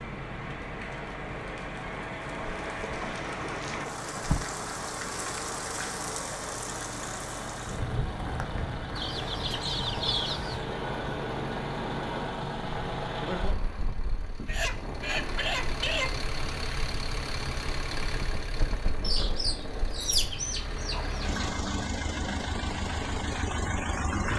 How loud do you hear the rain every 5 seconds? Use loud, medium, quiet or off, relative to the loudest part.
loud, loud, loud, medium, medium.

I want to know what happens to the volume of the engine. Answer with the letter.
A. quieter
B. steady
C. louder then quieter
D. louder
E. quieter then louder
D.